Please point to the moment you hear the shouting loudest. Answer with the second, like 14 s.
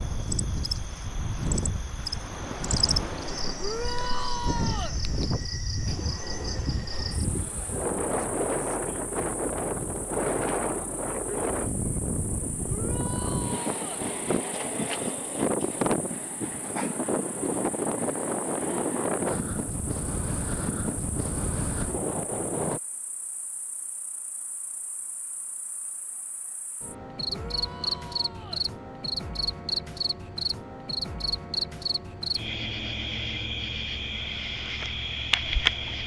4 s.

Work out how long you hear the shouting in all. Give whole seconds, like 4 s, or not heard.
4 s.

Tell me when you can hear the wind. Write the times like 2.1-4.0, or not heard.
0.0-22.8.